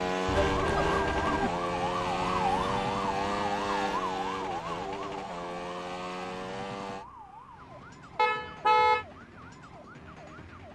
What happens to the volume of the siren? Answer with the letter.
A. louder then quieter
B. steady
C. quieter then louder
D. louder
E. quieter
E.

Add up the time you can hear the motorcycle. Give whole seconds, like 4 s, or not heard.
7 s.